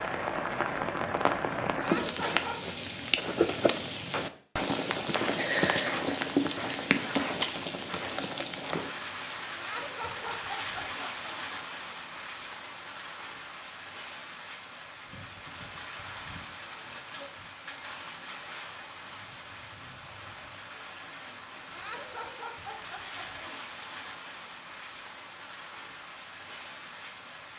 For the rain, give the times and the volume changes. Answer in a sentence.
You can hear the rain from 0.0 to 27.5 s, getting quieter.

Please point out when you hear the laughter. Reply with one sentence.
The laughter can be heard from 1.8 to 2.6 s, from 9.6 to 11.6 s and from 21.7 to 23.5 s.